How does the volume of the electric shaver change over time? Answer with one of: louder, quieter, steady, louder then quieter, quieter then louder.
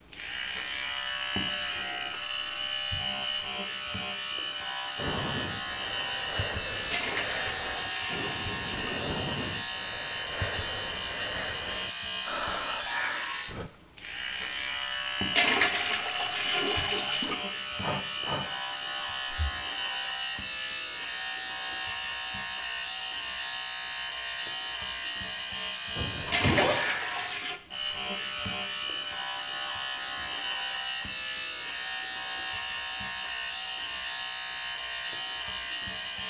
steady.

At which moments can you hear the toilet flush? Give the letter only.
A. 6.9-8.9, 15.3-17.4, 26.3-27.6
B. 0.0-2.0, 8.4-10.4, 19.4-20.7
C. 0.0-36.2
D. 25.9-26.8
A.